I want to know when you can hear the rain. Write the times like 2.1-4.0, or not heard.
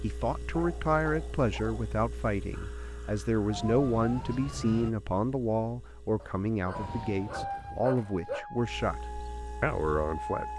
not heard.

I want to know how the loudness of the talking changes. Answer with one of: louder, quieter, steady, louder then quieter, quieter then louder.
steady.